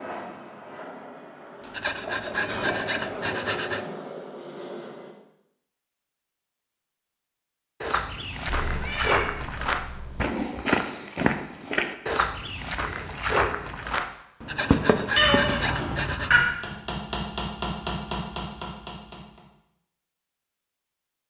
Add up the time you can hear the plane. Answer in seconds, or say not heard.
5 s.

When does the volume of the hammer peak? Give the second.
18 s.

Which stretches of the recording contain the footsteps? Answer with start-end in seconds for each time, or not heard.
7.8-16.1.